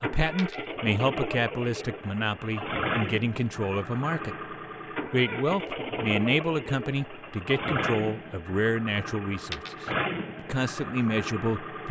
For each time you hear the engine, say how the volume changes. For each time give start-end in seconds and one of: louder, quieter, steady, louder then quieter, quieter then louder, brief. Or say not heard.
0.0-11.8 steady.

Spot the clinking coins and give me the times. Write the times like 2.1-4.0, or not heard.
0.3-0.8, 9.5-9.9.